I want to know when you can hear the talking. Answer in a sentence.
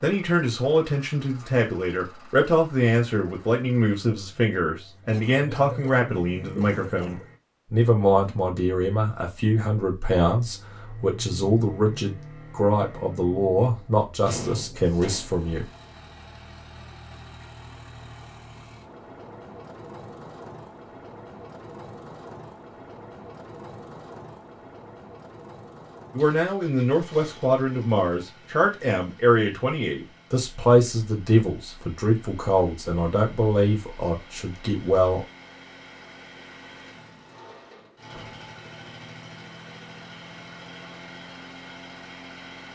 The talking can be heard from 0.0 to 15.7 s and from 26.1 to 35.2 s.